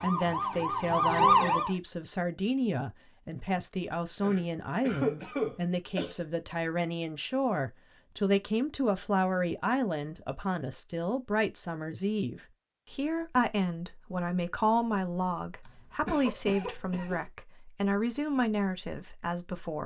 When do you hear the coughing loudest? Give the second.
5 s.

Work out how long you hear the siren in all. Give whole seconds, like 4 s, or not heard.
2 s.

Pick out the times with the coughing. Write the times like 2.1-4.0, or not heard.
4.2-6.2, 15.7-17.2.